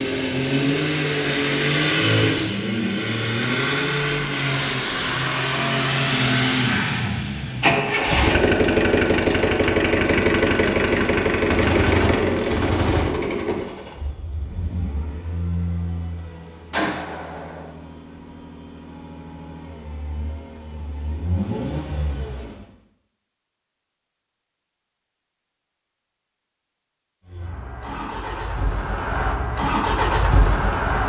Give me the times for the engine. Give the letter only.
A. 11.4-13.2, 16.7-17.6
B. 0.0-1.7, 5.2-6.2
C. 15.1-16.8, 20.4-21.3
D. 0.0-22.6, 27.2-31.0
D.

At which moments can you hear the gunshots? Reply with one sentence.
You can hear the gunshots from 11.4 to 13.2 s and from 16.7 to 17.6 s.